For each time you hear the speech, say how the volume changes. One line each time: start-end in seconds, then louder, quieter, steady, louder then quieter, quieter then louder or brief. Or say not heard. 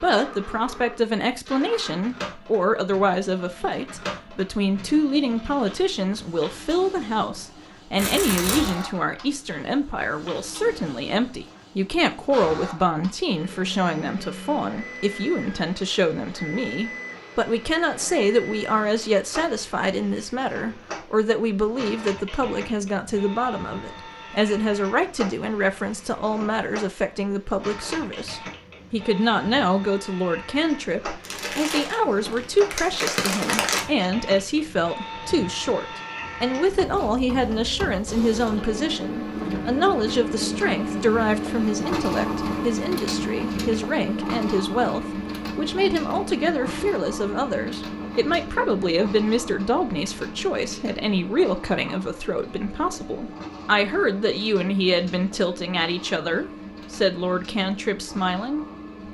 0.0-59.0 steady.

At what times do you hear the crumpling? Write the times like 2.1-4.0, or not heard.
8.0-8.8, 31.2-33.9.